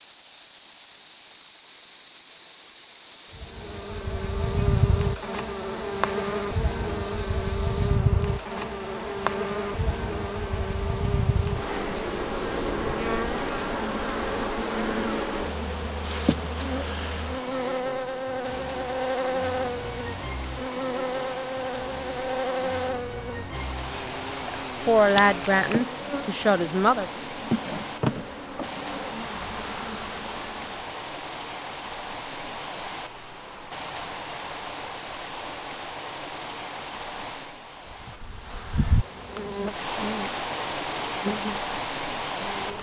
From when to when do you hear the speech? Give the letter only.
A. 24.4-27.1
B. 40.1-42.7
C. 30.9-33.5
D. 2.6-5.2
A.